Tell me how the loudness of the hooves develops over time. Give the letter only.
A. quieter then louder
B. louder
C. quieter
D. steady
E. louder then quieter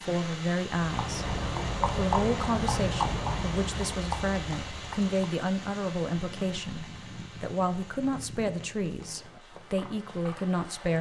C.